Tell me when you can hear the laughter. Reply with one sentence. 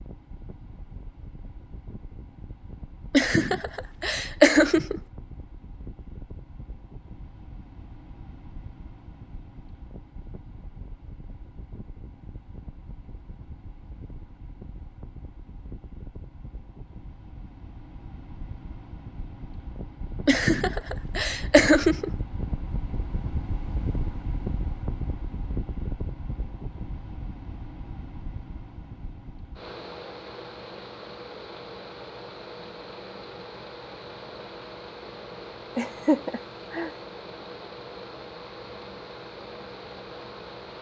You can hear the laughter from 3.1 to 5.0 s, from 20.2 to 22.1 s and from 35.8 to 37.0 s.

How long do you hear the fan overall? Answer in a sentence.
The fan can be heard for 41 seconds in total.